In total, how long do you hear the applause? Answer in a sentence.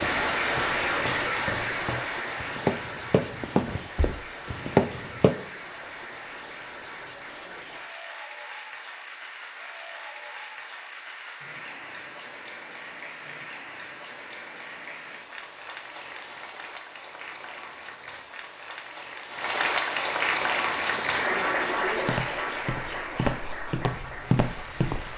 The applause can be heard for 25 seconds in total.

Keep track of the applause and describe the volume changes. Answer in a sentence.
The volume of the applause goes down, then up.